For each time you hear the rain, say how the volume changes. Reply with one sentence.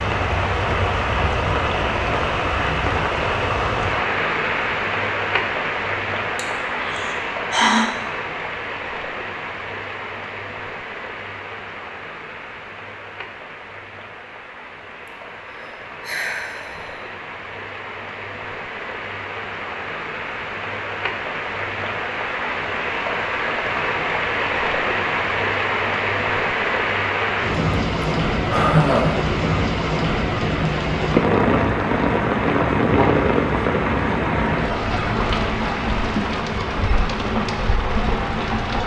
The rain can be heard from 0.0 to 38.8 s, getting quieter then louder.